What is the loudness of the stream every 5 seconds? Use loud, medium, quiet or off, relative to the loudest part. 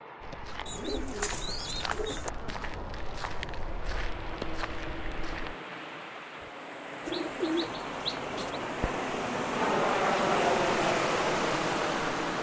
quiet, medium, loud.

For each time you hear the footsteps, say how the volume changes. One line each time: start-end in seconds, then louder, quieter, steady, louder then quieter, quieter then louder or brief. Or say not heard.
0.2-5.5 steady.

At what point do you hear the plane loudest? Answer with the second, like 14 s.
10 s.